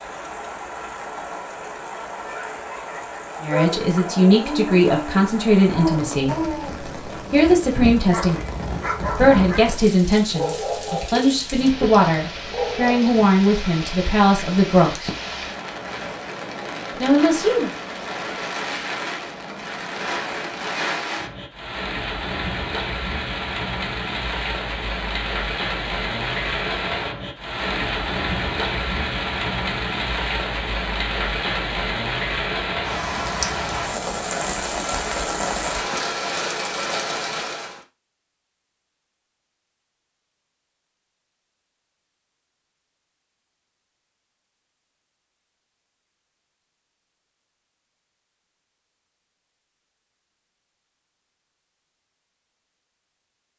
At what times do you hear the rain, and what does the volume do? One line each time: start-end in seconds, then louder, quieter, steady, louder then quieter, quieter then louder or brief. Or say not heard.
0.0-37.8 louder.